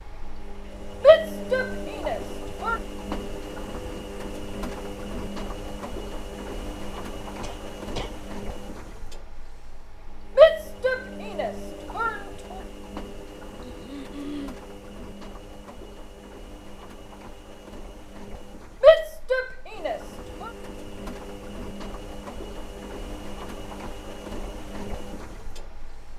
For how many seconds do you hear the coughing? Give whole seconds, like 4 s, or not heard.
2 s.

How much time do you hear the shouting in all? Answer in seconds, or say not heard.
5 s.